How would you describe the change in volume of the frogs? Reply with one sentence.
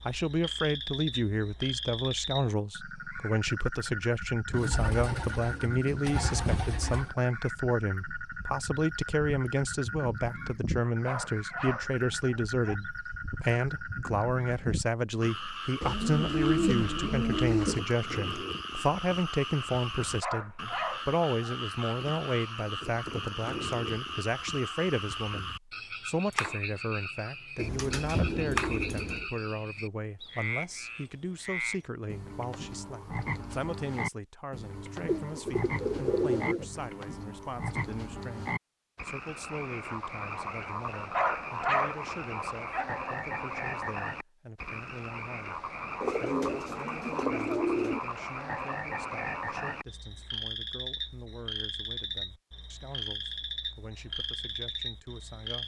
The loudness of the frogs stays about the same.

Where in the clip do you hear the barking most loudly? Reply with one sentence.
The loudest moment of the barking is at 42 seconds.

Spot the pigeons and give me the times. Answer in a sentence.
You can hear the pigeons from 4.5 to 7.1 s, from 15.8 to 17.8 s, from 27.6 to 29.3 s, from 35.0 to 36.6 s and from 46.0 to 48.0 s.